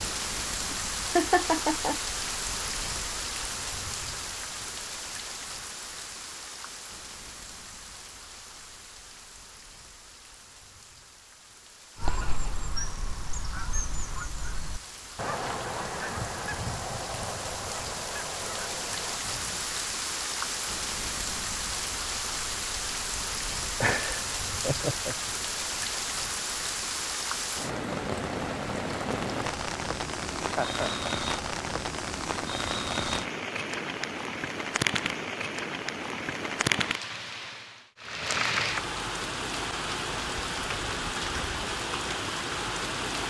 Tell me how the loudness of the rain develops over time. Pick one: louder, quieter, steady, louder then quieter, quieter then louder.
quieter then louder.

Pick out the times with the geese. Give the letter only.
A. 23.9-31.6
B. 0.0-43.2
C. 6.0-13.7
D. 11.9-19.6
D.